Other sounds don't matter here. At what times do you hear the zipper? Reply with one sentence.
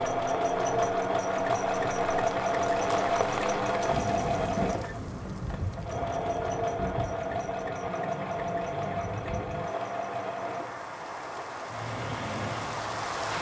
You can't hear the zipper here.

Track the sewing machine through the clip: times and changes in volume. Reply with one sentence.
The sewing machine can be heard from 0.0 to 13.3 s, getting quieter.